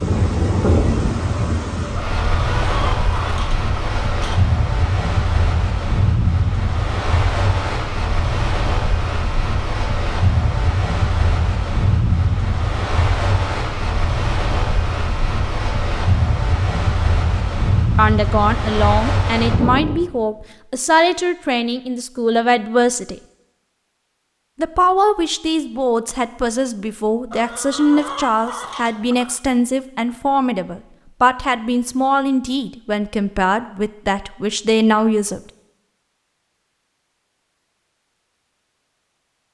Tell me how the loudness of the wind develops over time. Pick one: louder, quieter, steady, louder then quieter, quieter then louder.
steady.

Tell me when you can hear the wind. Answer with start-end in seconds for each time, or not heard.
0.0-20.0.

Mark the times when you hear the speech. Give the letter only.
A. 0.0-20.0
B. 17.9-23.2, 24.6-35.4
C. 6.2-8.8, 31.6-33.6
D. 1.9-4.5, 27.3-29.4
B.